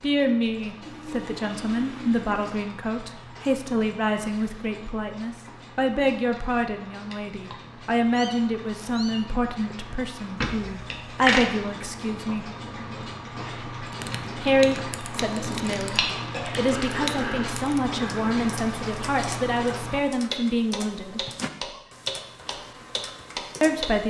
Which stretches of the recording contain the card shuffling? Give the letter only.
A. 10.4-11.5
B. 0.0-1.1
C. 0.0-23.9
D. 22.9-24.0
A.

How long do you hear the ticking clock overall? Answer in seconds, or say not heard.
24 s.